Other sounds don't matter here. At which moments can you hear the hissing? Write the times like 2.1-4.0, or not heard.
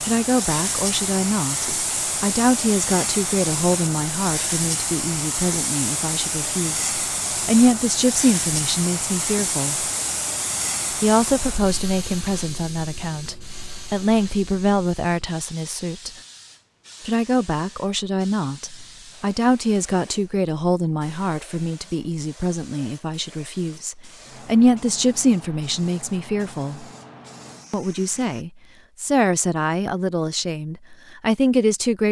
0.0-28.4.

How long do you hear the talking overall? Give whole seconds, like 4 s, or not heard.
29 s.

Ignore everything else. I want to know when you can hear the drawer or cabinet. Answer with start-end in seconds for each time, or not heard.
not heard.